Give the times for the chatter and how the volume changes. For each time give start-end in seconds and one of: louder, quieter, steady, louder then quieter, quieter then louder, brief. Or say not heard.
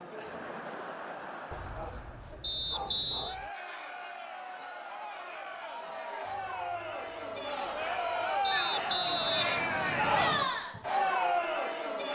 0.0-12.1 louder.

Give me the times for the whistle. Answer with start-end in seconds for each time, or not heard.
2.4-3.4, 8.4-10.4.